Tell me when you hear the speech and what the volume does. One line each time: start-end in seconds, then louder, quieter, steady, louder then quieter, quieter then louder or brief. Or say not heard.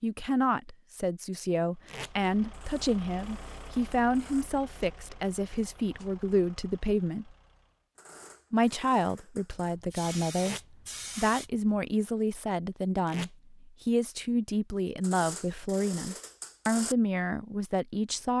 0.0-7.3 steady
8.5-18.3 steady.